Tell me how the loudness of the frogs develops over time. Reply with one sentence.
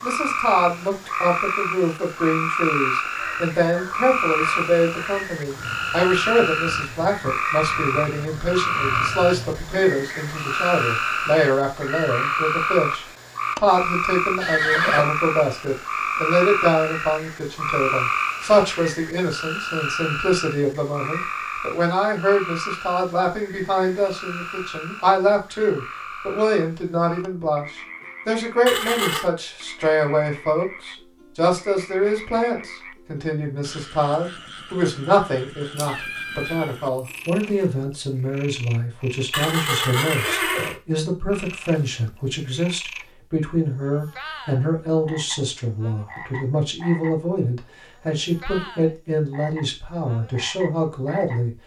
The volume of the frogs goes down.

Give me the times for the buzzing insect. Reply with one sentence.
You can't hear the buzzing insect here.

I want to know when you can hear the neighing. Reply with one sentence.
You can hear the neighing from 14.4 to 15.1 s, from 28.6 to 29.2 s and from 39.3 to 40.8 s.